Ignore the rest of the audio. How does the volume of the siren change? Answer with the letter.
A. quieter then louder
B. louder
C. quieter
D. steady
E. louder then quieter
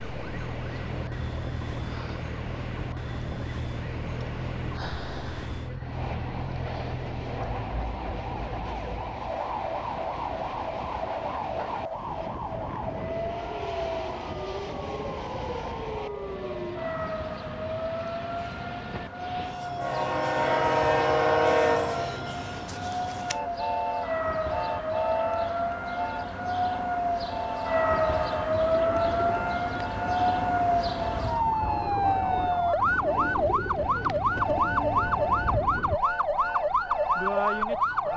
B.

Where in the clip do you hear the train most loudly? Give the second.
21 s.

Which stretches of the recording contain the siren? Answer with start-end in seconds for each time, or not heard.
0.0-38.1.